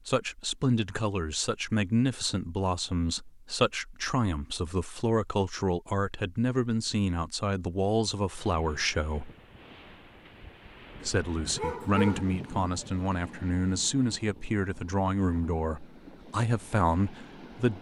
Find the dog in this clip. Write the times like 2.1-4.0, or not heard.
11.5-13.0.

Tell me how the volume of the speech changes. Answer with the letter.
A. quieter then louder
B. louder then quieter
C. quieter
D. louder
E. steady
E.